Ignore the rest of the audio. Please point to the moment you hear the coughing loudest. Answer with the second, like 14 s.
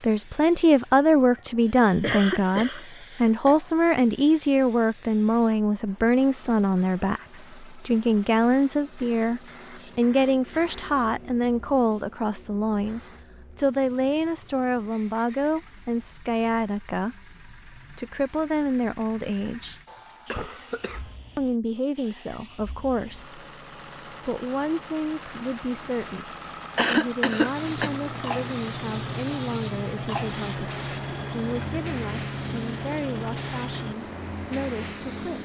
27 s.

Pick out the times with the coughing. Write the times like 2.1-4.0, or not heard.
2.0-2.9, 19.9-21.1, 26.8-27.9.